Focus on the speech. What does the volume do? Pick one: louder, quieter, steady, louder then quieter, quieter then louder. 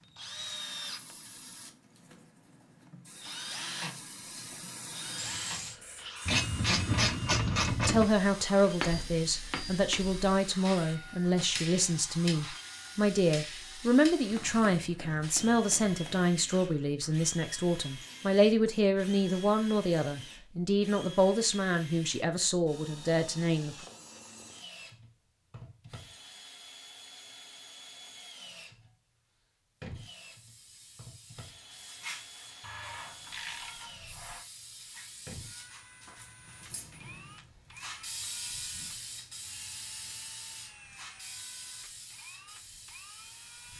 steady.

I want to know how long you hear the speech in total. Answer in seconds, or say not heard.
16 s.